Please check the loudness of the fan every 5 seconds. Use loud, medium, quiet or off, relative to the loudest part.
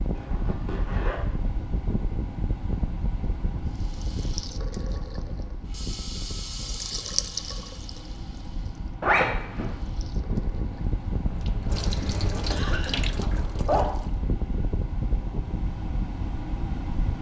loud, medium, loud, loud.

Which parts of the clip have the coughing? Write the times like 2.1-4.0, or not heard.
12.5-13.1.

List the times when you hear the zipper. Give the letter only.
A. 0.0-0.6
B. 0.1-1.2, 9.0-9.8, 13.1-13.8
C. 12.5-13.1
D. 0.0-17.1
B.